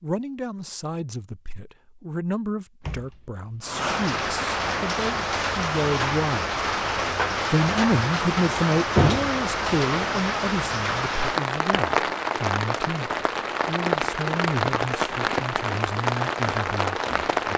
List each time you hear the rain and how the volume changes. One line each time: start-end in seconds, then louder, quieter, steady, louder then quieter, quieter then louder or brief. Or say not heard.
3.6-17.5 steady.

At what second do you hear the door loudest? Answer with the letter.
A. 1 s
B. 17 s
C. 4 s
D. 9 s
D.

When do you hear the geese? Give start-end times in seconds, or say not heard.
not heard.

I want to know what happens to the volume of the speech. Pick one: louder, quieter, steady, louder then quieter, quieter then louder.
louder then quieter.